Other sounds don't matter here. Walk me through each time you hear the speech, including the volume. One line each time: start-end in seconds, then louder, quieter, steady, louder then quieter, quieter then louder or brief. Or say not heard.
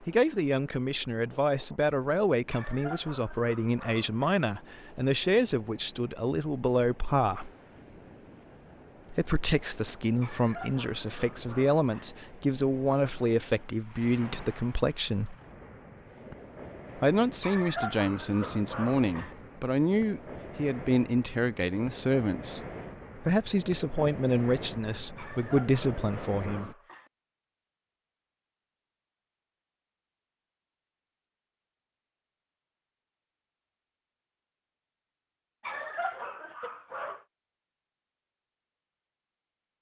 0.0-7.5 steady
9.1-15.3 steady
16.9-26.7 steady.